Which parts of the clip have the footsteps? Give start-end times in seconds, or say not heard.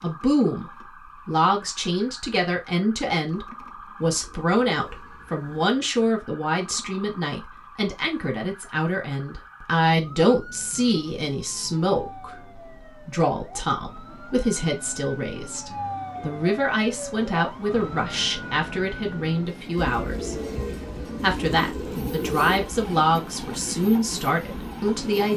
not heard.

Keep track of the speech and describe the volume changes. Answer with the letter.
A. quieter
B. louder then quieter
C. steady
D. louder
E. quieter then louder
C.